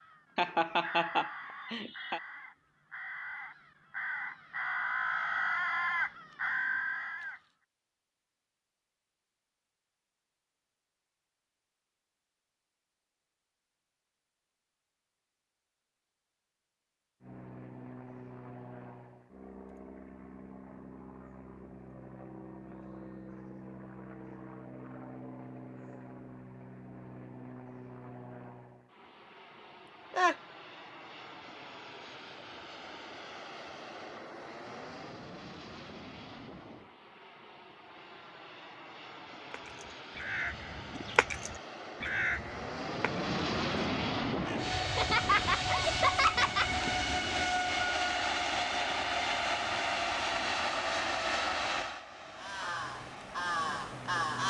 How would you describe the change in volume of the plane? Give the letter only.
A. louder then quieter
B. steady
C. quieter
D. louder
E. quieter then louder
D.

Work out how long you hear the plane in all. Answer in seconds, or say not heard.
37 s.